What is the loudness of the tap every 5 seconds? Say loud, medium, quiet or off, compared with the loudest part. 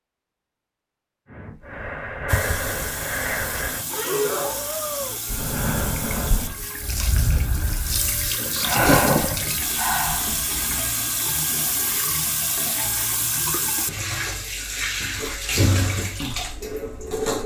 medium, loud, loud, loud.